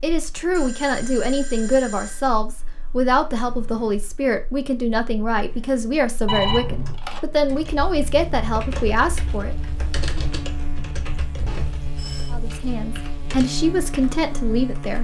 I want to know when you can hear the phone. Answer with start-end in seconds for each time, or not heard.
0.5-2.3, 6.2-7.0, 11.4-12.3.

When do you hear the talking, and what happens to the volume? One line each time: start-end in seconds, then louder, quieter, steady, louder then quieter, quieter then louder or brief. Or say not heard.
0.0-9.6 steady
12.3-14.9 brief.